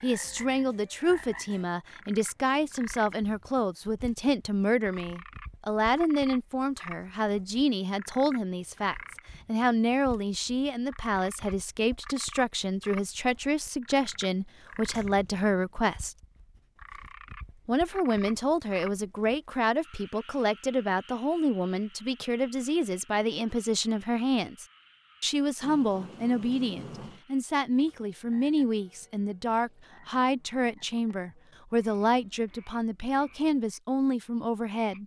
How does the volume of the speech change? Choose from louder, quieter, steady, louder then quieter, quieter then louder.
steady.